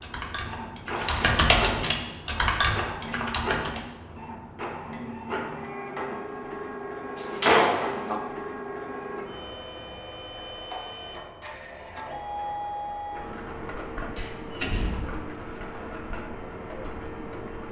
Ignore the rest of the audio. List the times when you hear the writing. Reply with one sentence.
The writing can't be heard in this clip.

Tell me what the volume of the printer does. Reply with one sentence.
The loudness of the printer stays about the same.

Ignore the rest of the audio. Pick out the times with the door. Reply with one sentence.
The door can be heard from 0.9 to 2.8 s, from 7.2 to 8.2 s and from 14.2 to 15.1 s.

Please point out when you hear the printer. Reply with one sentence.
You can hear the printer from 0.0 to 17.6 s.